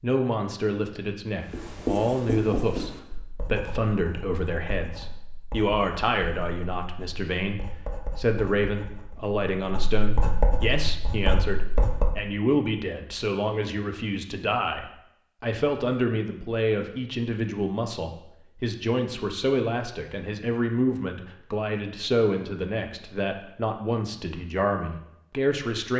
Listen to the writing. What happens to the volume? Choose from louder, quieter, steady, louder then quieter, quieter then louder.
quieter then louder.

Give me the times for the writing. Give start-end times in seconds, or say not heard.
1.4-12.2.